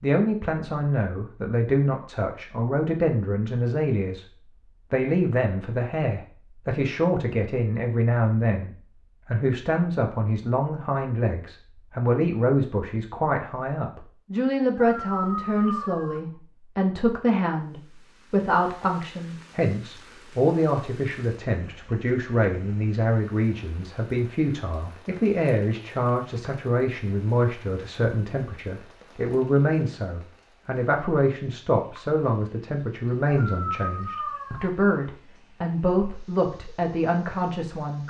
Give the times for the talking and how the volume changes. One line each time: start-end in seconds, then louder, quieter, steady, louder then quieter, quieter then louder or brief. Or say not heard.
0.0-38.0 steady.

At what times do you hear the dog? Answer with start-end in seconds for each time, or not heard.
14.8-16.2, 33.2-34.7.